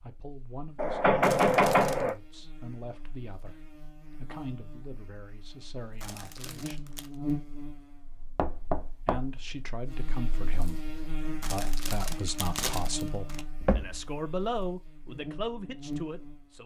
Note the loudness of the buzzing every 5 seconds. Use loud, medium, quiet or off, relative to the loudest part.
medium, loud, loud, loud.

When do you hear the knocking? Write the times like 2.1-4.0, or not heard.
0.8-2.1, 8.3-9.3, 13.6-14.2.